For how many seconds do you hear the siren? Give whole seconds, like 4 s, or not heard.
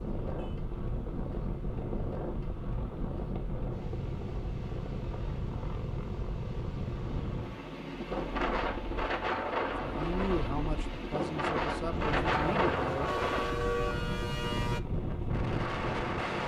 2 s.